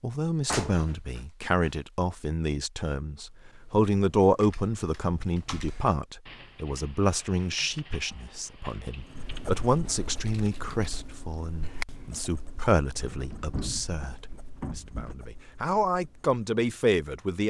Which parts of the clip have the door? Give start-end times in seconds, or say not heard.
0.5-1.7, 12.9-15.2.